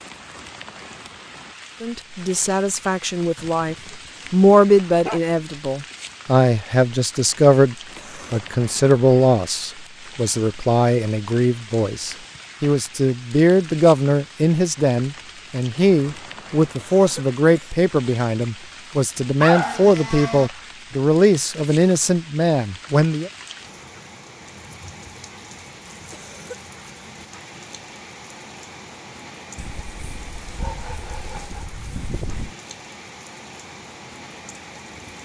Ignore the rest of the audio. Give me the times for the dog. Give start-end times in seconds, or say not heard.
3.4-5.4, 19.4-20.5, 29.6-32.5.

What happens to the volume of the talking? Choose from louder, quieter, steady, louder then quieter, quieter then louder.
steady.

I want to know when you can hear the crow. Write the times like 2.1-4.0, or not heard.
not heard.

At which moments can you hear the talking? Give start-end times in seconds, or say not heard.
1.8-23.3.